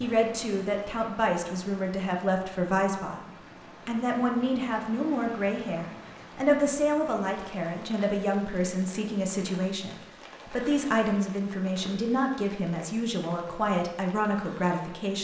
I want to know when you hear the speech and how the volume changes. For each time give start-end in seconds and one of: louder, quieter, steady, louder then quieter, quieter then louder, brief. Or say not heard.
0.0-15.1 steady.